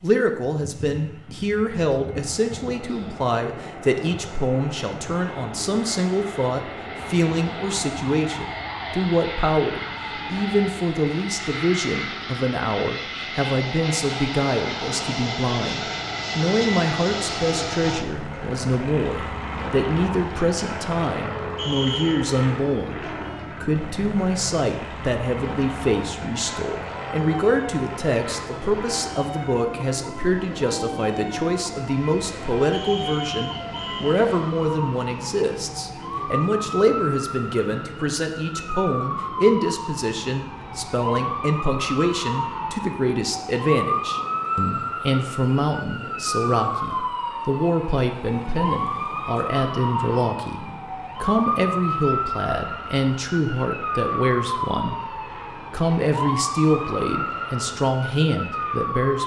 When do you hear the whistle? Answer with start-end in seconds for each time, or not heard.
21.6-22.2, 32.7-34.2.